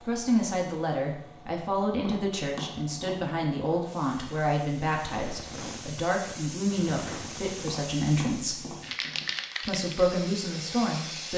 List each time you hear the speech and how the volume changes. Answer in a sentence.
The speech can be heard from 0.0 to 8.7 s, at a steady volume; and briefly from 9.7 to 11.3 s.